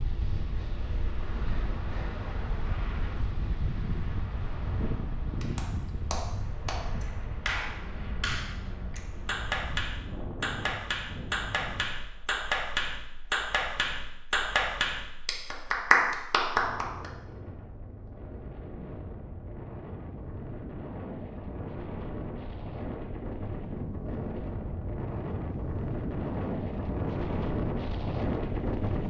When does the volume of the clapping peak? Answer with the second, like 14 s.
16 s.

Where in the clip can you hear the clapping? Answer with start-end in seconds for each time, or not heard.
5.4-17.1.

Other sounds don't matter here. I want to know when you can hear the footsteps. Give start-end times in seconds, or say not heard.
not heard.